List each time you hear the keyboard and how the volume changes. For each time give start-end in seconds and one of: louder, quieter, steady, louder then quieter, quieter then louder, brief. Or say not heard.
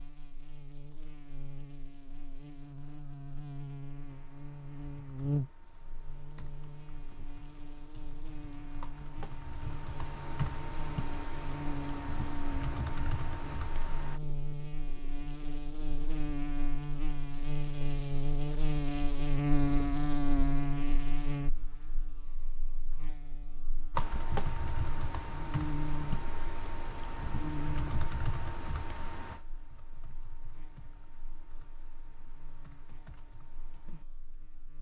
4.0-14.2 louder
23.9-34.0 quieter.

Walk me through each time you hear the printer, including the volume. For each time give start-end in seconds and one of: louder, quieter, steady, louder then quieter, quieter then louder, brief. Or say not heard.
not heard.